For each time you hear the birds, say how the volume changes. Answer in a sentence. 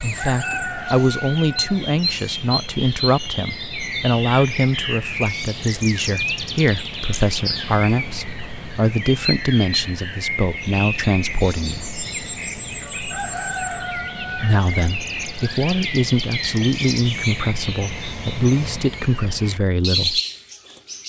The birds can be heard from 0.0 to 21.0 s, at a steady volume.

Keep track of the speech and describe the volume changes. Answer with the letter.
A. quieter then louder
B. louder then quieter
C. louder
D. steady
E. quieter
D.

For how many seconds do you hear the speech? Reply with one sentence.
The speech can be heard for 18 seconds in total.